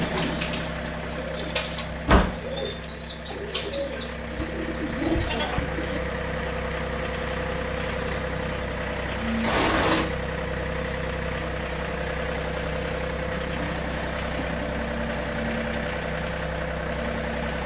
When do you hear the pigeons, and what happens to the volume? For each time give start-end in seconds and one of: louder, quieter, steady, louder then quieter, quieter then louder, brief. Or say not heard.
0.0-6.0 louder.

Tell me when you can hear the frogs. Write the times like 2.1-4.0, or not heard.
not heard.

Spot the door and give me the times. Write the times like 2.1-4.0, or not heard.
1.9-2.4, 9.4-10.1.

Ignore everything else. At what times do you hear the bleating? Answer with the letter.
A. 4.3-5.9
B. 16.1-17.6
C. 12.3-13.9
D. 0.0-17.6
A.